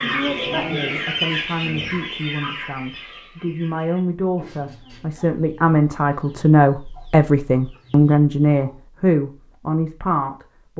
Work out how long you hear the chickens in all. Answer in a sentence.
The chickens can be heard for 9 seconds in total.